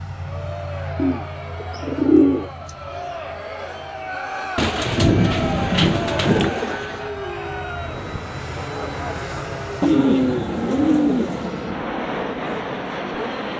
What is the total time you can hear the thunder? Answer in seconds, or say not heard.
2 s.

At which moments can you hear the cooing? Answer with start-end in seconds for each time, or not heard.
0.9-2.7, 4.5-7.0, 9.8-11.6.